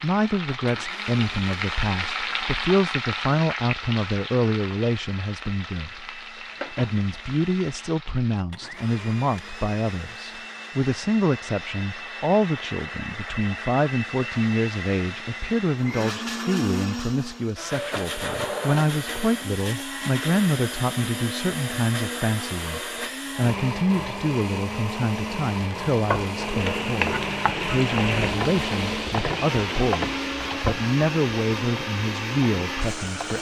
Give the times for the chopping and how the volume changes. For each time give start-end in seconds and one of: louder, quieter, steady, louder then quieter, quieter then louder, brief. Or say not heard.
not heard.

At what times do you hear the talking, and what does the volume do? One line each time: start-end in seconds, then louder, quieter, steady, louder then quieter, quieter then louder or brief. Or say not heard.
0.0-33.3 steady.